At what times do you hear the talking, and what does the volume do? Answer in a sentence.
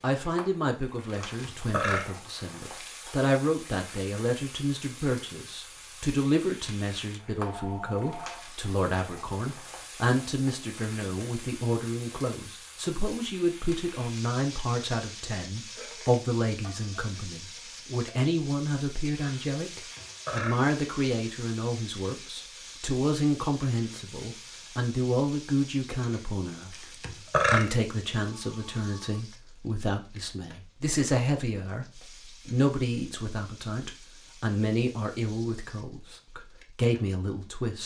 You can hear the talking from 0.0 to 37.8 s, at a steady volume.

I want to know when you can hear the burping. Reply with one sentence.
The burping can be heard from 1.3 to 3.0 s, from 19.8 to 20.6 s and from 26.7 to 27.7 s.